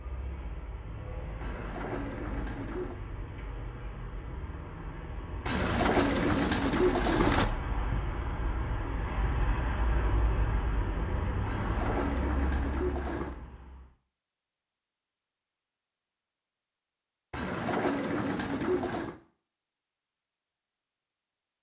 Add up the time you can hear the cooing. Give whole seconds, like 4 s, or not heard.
7 s.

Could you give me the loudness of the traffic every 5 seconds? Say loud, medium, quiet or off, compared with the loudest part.
medium, loud, loud, off, off.